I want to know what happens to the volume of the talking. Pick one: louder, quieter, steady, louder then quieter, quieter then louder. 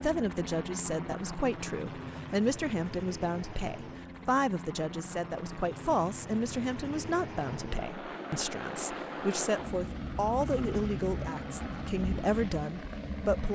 steady.